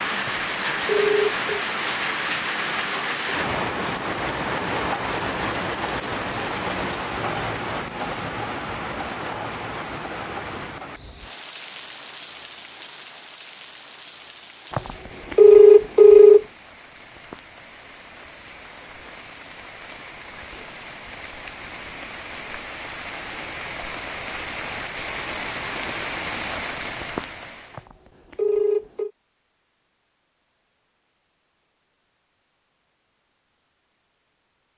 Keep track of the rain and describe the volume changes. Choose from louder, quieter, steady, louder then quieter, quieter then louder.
quieter then louder.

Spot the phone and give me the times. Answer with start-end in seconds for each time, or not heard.
0.2-1.4, 14.7-16.4, 27.8-29.1.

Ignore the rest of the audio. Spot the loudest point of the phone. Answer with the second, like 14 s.
16 s.